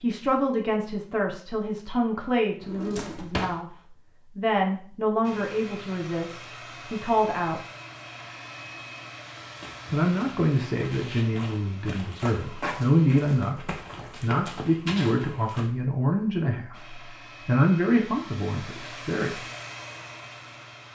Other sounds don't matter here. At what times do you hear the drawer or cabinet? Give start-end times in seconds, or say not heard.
2.6-3.6.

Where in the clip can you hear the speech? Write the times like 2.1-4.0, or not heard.
0.0-7.7, 9.9-19.4.